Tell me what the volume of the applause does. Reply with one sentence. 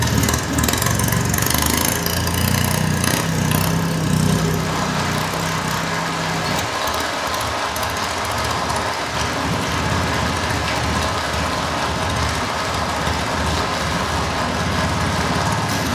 The volume of the applause goes up.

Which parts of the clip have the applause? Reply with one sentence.
You can hear the applause from 0.0 to 15.9 s.